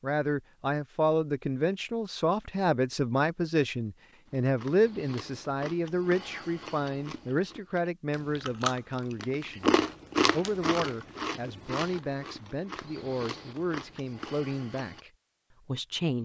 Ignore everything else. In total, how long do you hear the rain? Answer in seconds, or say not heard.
not heard.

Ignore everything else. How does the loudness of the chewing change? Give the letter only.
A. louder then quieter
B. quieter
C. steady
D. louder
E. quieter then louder
A.